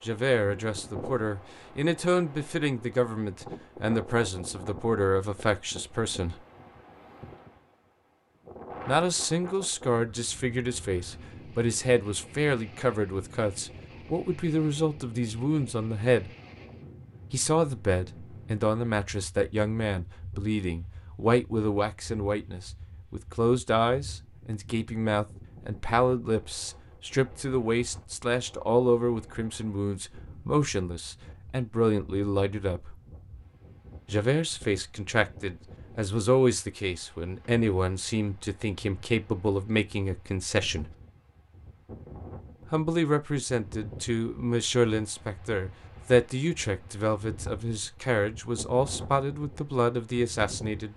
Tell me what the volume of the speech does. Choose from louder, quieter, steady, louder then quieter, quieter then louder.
steady.